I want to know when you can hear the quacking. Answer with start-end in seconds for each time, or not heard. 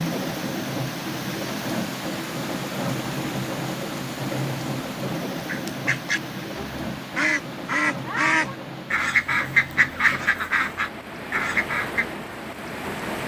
5.5-12.1.